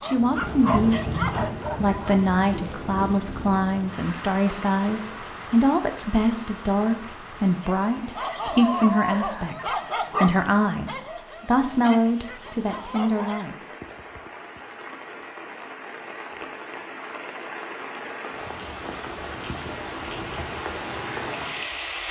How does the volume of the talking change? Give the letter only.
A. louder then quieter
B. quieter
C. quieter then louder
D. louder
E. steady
E.